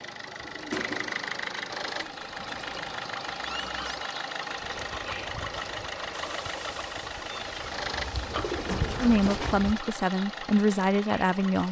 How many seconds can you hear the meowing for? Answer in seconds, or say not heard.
4 s.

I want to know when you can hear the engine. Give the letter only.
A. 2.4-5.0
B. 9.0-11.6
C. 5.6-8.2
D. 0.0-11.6
D.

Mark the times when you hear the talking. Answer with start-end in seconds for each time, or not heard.
9.0-11.6.